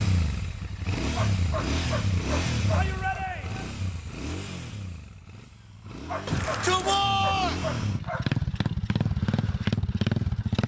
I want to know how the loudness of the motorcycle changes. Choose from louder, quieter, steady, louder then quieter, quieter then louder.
quieter then louder.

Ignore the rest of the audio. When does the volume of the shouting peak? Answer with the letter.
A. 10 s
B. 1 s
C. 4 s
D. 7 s
D.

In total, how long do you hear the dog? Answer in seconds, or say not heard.
4 s.